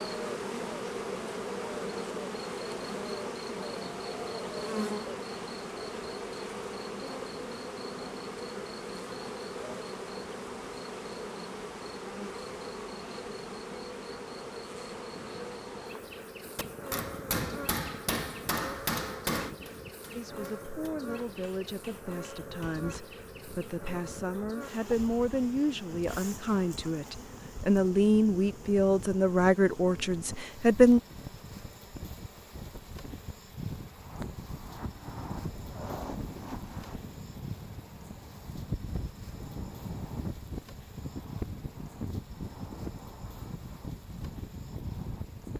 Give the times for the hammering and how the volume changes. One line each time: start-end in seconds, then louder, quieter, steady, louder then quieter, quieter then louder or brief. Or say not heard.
16.6-22.9 quieter then louder.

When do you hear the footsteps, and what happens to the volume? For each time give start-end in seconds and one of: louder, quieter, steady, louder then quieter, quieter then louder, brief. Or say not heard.
not heard.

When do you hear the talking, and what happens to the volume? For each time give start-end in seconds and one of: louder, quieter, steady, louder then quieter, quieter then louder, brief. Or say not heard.
20.1-31.0 louder.